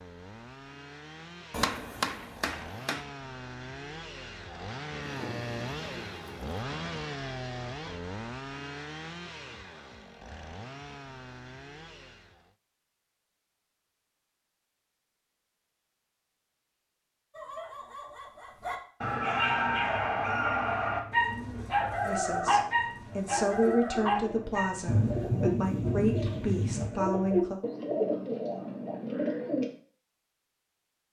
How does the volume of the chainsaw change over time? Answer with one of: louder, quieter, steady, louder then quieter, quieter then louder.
louder then quieter.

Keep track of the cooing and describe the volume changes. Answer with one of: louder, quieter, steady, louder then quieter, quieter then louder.
louder.